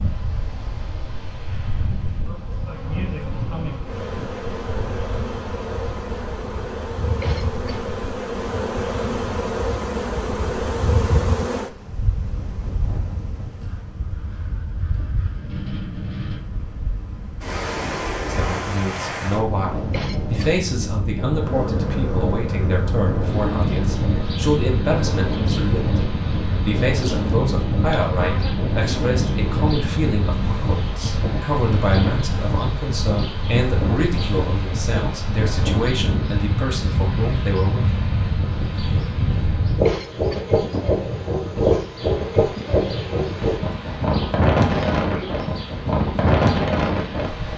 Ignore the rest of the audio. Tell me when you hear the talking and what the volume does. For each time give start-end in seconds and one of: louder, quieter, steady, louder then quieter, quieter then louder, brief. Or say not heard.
18.3-38.0 steady.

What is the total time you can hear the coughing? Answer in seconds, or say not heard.
2 s.